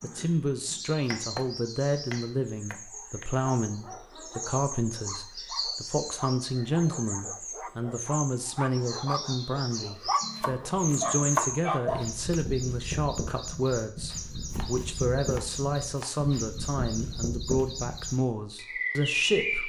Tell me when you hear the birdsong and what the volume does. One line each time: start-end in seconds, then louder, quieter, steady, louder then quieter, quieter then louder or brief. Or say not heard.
0.0-19.6 louder.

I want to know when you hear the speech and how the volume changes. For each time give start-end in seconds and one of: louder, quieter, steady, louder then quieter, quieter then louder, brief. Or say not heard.
0.0-19.6 steady.